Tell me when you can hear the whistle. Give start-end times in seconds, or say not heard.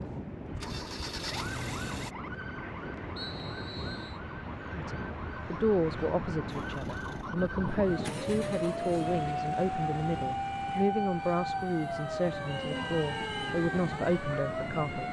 3.1-4.2, 12.4-13.6.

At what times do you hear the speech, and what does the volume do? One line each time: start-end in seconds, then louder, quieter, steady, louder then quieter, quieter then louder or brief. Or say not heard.
4.7-15.0 steady.